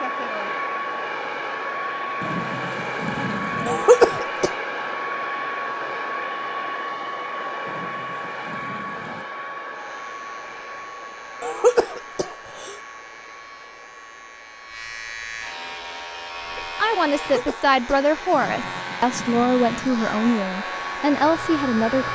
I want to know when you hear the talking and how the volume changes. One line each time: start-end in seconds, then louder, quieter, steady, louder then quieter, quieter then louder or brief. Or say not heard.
16.8-22.1 steady.